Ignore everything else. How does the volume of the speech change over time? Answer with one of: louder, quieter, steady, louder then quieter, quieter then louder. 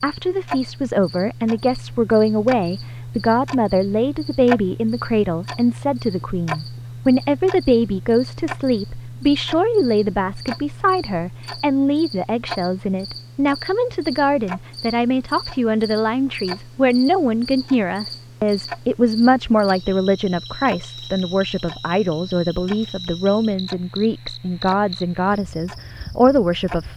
steady.